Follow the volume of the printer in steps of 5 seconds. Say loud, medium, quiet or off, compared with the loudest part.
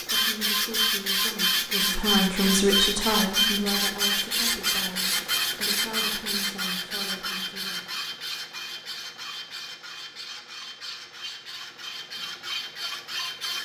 loud, medium, medium.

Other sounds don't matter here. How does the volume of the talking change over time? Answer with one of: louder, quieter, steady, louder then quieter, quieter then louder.
louder then quieter.